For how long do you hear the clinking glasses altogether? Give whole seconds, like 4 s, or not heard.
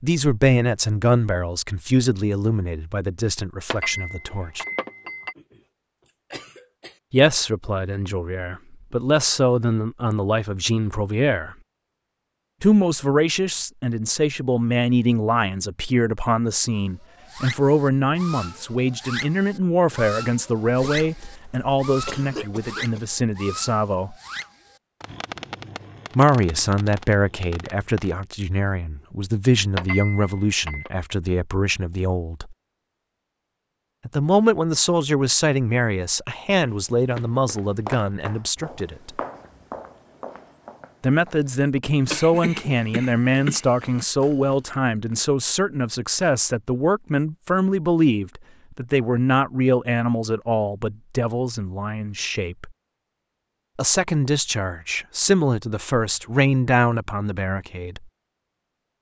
3 s.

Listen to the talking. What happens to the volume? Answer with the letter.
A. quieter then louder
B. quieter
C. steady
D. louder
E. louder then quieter
C.